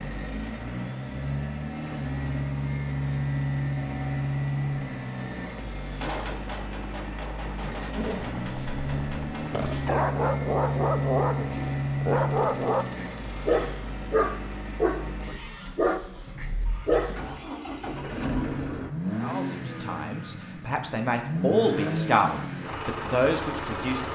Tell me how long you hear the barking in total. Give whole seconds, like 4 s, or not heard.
9 s.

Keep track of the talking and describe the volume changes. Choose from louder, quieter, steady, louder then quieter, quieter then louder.
louder.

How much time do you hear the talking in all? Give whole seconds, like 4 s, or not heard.
5 s.